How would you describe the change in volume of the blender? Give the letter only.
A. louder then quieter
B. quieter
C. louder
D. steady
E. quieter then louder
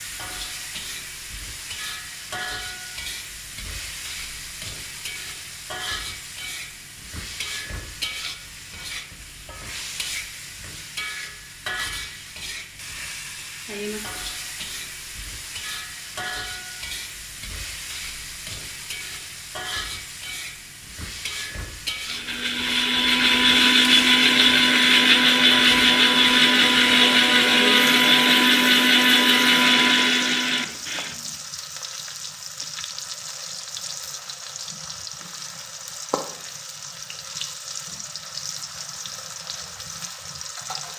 D.